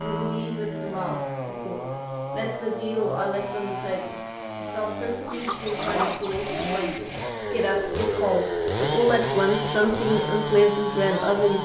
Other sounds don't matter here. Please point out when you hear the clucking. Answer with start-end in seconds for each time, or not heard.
5.2-6.8.